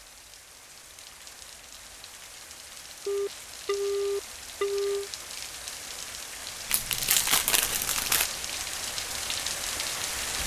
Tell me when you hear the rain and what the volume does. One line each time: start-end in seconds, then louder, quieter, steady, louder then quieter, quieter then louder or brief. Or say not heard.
0.0-10.4 louder.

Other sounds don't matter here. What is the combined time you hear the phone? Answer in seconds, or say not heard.
2 s.